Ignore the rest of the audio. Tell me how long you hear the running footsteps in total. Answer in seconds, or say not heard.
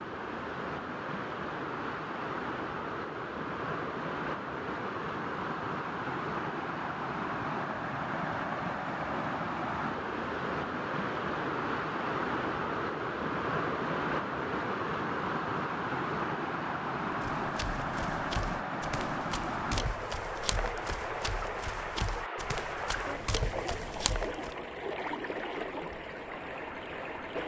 7 s.